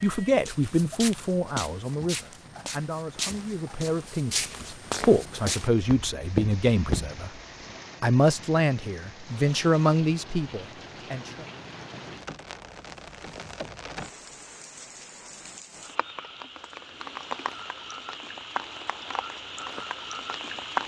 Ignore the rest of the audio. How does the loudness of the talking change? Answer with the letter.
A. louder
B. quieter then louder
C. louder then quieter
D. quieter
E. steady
B.